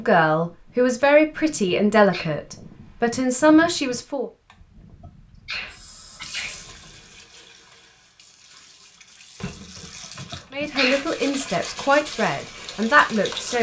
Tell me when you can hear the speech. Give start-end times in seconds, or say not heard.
0.0-4.3, 10.5-13.5.